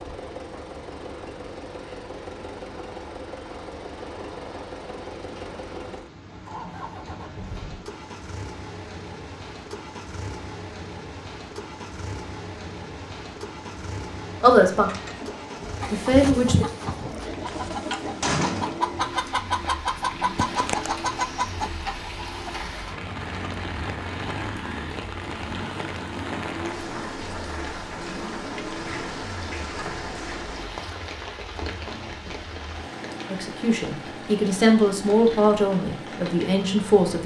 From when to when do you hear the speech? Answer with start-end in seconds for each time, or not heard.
14.4-14.9, 15.9-16.6, 33.3-37.2.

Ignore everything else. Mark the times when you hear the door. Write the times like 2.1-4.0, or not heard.
17.4-18.8.